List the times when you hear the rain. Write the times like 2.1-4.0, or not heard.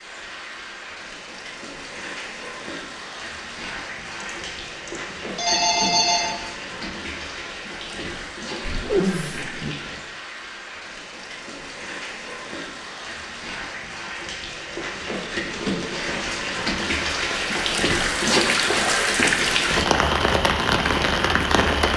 0.0-21.9.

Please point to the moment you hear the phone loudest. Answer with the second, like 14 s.
6 s.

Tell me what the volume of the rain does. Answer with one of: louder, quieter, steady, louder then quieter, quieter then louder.
louder.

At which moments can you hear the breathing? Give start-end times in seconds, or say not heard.
not heard.